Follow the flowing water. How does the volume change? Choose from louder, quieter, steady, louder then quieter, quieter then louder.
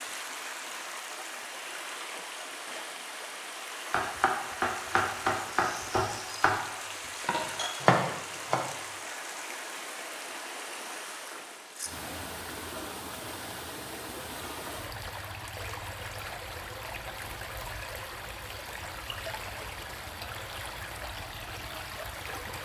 steady.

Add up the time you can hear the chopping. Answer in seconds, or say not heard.
5 s.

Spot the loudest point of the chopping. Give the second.
8 s.